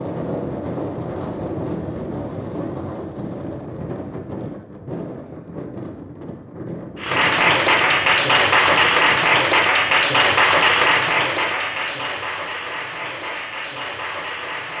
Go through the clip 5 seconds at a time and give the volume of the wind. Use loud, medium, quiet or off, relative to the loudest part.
loud, medium, off.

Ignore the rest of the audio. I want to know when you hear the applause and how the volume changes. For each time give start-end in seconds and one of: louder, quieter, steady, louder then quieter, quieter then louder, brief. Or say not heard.
7.0-14.7 quieter.